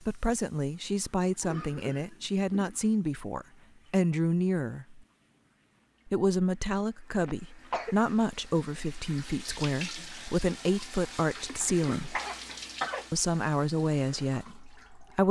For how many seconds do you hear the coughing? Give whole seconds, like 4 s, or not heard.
4 s.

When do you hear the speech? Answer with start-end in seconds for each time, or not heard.
0.0-5.0, 6.0-12.2, 13.1-15.2.